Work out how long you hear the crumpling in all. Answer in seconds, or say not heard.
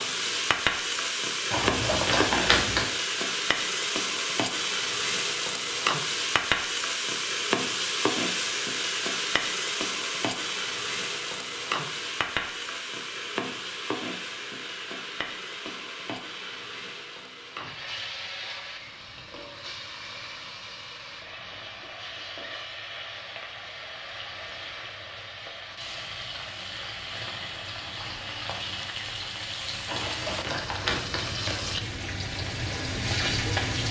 3 s.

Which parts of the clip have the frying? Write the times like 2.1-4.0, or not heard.
0.0-33.8.